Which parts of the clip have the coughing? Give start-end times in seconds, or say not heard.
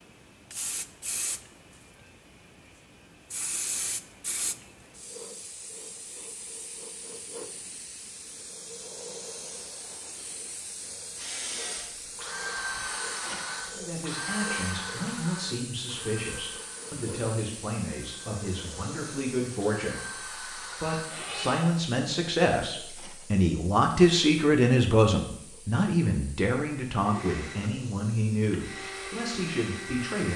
not heard.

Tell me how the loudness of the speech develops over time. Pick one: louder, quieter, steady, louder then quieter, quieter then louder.
louder then quieter.